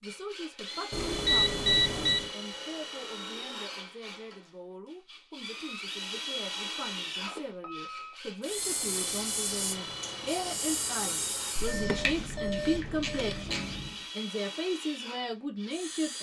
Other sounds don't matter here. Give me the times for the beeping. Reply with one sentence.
You can hear the beeping from 0.9 to 2.3 s, from 6.8 to 8.2 s and from 11.6 to 13.4 s.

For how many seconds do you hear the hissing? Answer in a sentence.
The hissing can be heard for 6 seconds in total.